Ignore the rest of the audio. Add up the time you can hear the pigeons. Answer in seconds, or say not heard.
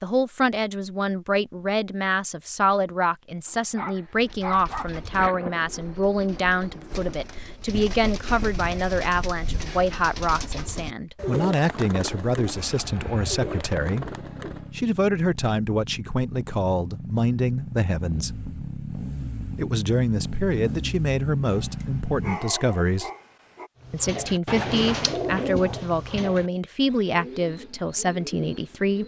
16 s.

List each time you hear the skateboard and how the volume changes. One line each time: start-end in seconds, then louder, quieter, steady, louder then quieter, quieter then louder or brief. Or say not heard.
not heard.